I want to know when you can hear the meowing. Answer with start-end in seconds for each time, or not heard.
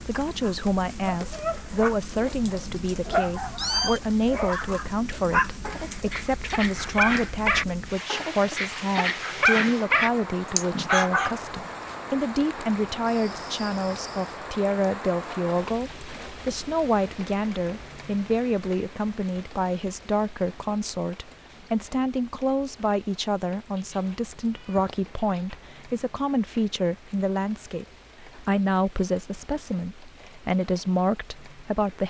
3.4-4.0, 13.1-14.3, 23.8-25.6.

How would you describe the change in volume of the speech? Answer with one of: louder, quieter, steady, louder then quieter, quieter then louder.
steady.